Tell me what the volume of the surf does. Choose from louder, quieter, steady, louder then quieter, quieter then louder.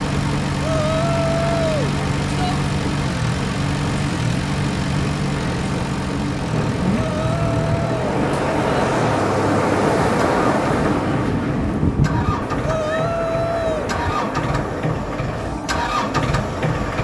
louder then quieter.